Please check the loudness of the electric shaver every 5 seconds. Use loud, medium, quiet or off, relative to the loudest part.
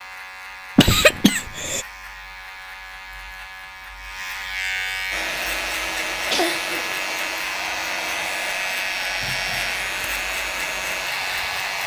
medium, loud, loud.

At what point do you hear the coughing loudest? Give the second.
1 s.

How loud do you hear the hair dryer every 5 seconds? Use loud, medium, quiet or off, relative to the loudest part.
off, loud, loud.